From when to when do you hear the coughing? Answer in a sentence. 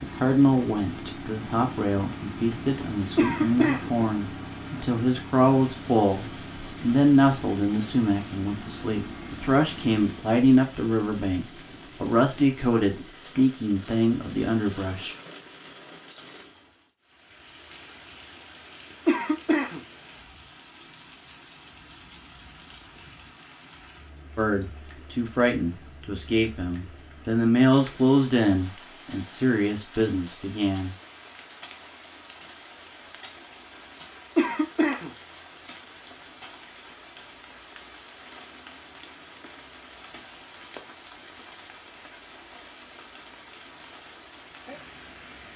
You can hear the coughing from 3.1 to 3.9 s, from 19.1 to 19.8 s and from 34.4 to 35.1 s.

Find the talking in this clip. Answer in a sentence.
The talking can be heard from 0.0 to 15.2 s and from 24.4 to 30.9 s.